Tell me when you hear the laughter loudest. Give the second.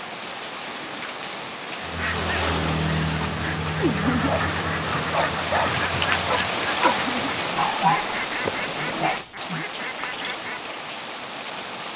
4 s.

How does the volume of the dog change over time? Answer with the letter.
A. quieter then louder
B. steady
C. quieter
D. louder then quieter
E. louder
D.